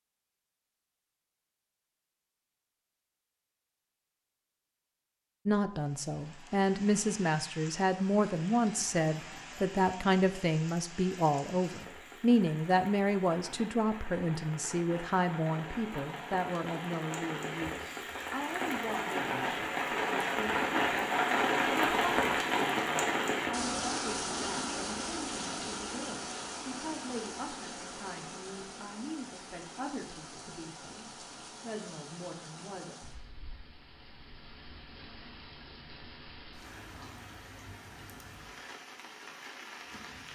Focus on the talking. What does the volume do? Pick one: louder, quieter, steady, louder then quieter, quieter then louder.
quieter.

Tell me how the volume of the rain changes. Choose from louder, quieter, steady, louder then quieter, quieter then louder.
louder then quieter.